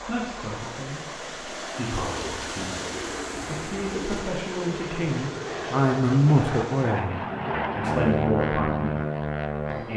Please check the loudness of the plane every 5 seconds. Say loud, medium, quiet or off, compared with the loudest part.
medium, loud.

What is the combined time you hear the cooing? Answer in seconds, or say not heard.
2 s.